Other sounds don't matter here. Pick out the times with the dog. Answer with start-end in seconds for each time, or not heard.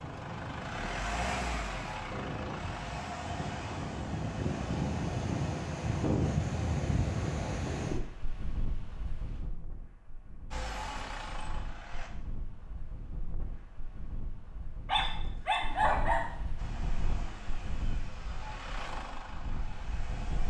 14.8-16.4.